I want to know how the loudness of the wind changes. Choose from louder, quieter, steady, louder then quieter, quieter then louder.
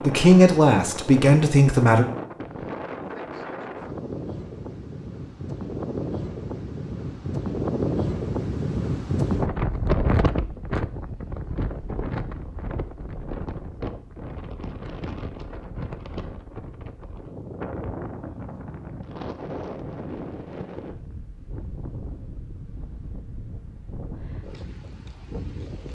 louder then quieter.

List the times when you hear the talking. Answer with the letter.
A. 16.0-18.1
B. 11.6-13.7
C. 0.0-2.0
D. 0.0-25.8
C.